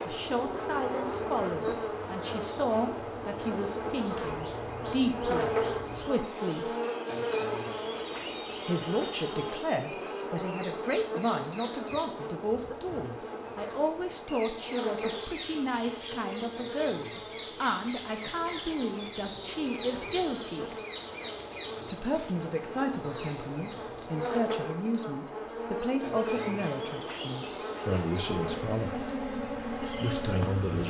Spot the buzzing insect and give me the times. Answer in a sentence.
The buzzing insect can be heard from 0.0 to 30.8 s.